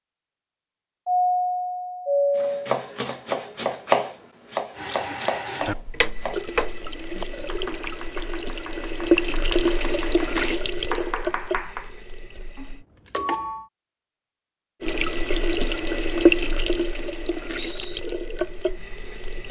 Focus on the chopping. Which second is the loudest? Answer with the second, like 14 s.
4 s.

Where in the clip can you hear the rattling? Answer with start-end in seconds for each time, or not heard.
17.6-18.0.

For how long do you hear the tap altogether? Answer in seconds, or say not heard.
13 s.